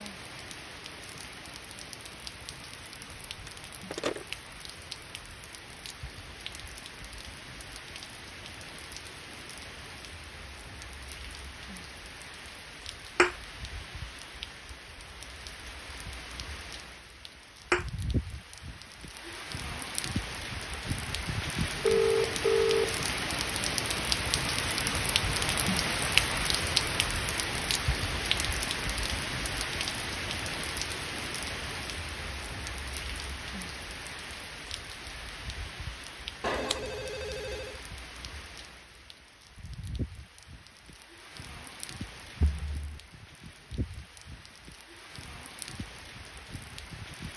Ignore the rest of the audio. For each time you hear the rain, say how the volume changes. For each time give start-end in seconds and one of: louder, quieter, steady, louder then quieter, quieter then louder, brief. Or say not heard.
0.0-47.3 louder then quieter.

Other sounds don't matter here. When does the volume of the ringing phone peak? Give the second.
22 s.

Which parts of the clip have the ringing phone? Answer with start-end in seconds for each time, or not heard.
3.3-4.2, 21.8-23.0, 36.4-37.8.